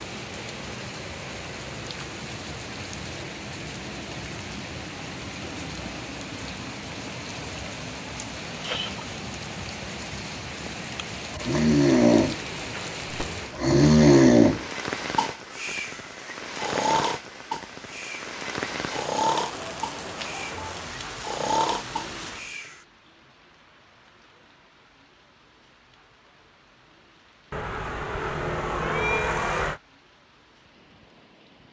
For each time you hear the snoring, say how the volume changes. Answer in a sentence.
You can hear the snoring from 11.3 to 22.8 s, getting quieter.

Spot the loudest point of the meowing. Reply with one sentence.
The volume of the meowing peaks at 29 seconds.